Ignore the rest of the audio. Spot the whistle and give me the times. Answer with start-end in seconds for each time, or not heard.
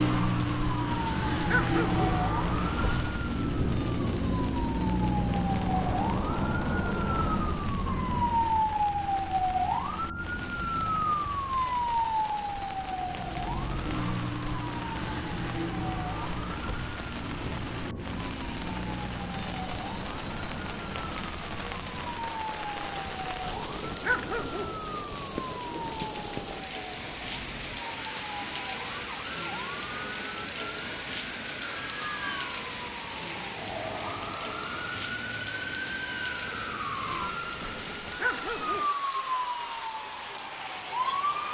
not heard.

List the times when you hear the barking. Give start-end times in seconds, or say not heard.
0.3-2.0, 22.9-24.8, 37.1-38.9.